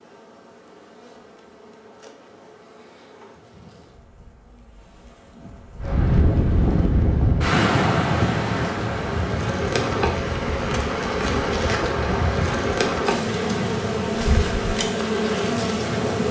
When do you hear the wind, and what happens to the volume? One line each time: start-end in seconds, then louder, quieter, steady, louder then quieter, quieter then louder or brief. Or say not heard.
5.8-16.2 quieter.